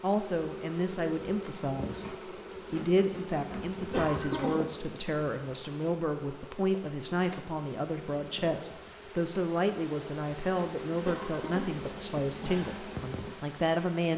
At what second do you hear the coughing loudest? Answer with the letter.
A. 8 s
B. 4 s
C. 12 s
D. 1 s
B.